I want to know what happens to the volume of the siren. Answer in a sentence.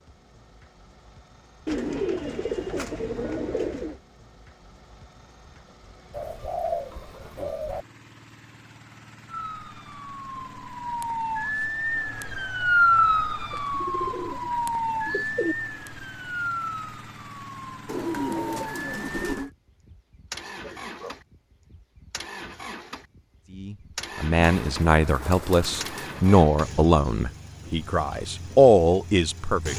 The volume of the siren goes up, then down.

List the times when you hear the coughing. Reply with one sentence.
The coughing can be heard from 20.4 to 21.1 s.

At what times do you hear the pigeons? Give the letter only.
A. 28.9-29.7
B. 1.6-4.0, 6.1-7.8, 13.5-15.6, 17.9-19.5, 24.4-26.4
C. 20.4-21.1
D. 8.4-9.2
B.